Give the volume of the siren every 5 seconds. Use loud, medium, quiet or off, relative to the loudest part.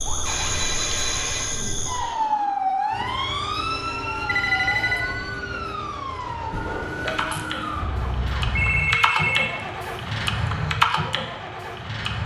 loud, medium, off.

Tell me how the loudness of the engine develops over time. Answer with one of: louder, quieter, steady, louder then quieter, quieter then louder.
louder.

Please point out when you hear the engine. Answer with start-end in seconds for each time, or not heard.
2.9-12.2.